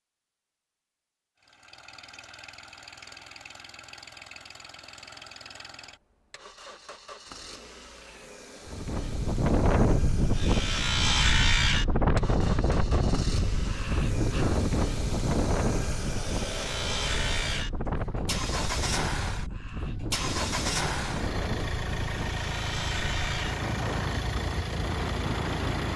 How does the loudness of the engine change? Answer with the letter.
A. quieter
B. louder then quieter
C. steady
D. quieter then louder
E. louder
E.